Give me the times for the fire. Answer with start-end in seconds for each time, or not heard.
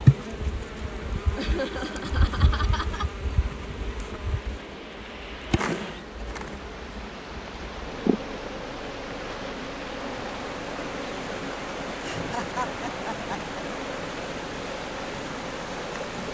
not heard.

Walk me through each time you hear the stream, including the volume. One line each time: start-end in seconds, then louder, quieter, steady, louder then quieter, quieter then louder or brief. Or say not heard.
0.0-16.2 louder.